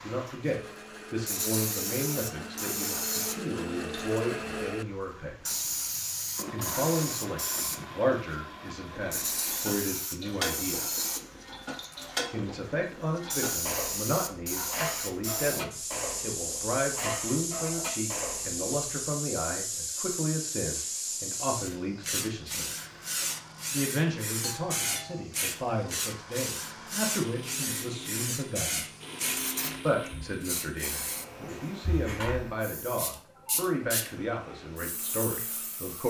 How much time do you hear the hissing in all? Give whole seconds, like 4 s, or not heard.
36 s.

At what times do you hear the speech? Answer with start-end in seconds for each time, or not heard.
0.0-5.7, 6.5-10.8, 12.3-22.7, 23.7-28.9, 29.9-36.0.